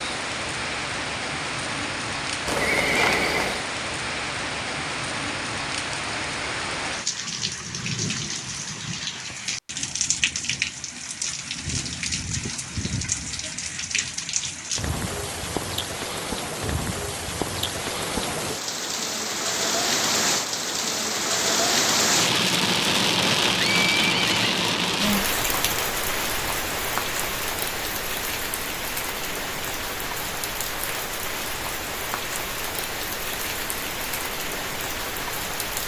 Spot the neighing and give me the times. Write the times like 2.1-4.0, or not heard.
2.5-3.6, 23.6-24.4.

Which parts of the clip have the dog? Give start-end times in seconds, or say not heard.
not heard.